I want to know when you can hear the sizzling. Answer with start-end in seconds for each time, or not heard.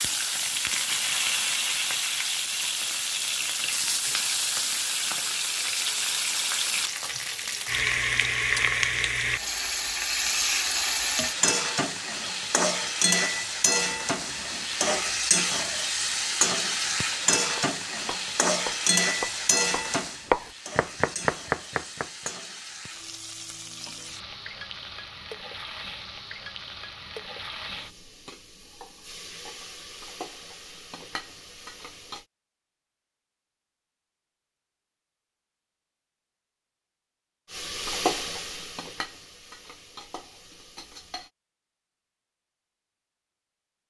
0.0-32.2, 37.5-41.3.